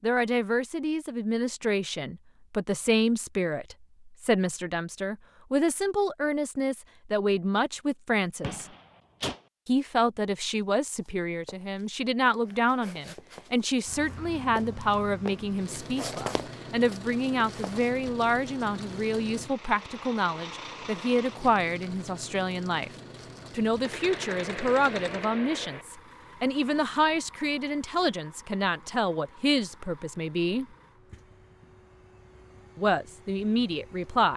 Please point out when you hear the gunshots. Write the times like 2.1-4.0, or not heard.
8.4-9.4, 23.9-25.9.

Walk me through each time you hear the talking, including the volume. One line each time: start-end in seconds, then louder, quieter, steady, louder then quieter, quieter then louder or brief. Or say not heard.
0.0-8.7 steady
9.7-22.9 steady
23.5-30.6 steady
32.8-34.3 brief.